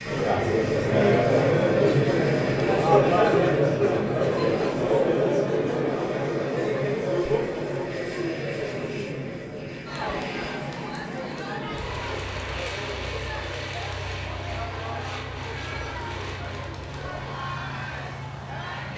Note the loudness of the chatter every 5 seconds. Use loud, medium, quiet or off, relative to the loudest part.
loud, medium, quiet, quiet.